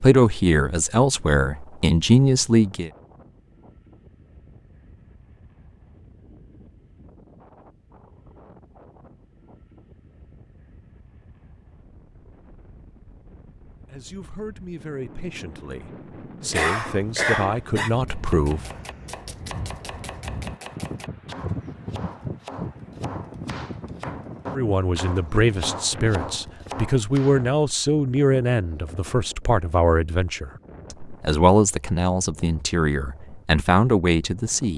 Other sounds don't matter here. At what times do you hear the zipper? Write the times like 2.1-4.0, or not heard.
not heard.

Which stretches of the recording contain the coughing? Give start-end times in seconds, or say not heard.
16.5-17.9.